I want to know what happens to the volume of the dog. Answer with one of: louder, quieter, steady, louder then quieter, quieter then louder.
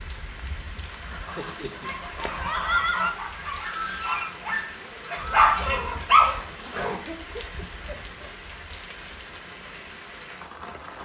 louder.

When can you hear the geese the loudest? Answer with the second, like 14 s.
3 s.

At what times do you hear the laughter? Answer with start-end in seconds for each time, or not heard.
0.8-2.0, 6.8-8.3.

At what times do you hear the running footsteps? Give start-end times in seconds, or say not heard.
not heard.